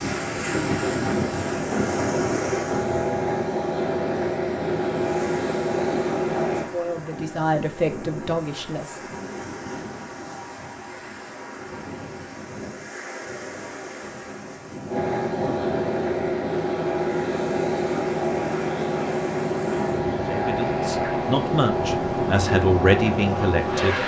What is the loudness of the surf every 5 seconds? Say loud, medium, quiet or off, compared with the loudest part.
loud, medium, medium, medium, medium.